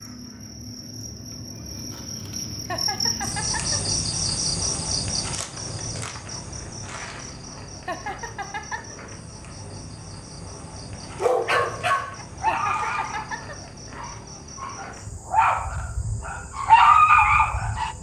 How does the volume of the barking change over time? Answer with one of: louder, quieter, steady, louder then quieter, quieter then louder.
quieter then louder.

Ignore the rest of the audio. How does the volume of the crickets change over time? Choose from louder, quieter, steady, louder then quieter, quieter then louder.
quieter.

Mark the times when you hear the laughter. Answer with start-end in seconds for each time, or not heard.
2.6-3.9, 7.8-8.9, 12.4-13.7.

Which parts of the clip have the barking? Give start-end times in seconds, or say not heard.
11.2-17.9.